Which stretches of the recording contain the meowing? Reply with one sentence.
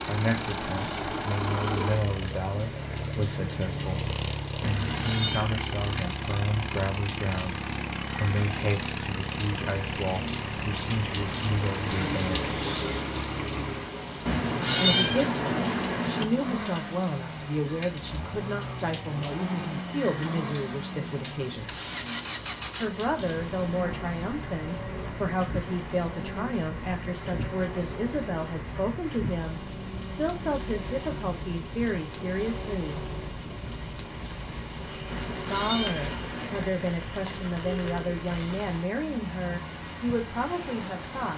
The meowing can be heard from 4.6 to 5.5 s, from 14.2 to 16.2 s and from 35.1 to 36.7 s.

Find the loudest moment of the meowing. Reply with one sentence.
The loudest moment of the meowing is at 15 seconds.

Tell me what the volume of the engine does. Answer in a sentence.
The loudness of the engine goes down.